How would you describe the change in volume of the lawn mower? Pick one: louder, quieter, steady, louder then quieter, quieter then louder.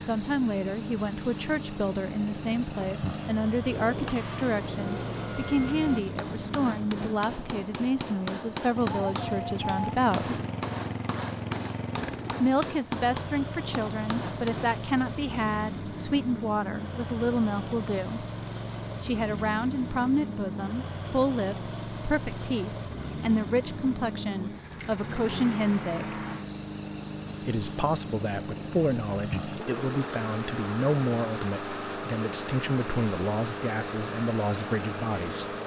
steady.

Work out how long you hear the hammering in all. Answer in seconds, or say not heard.
11 s.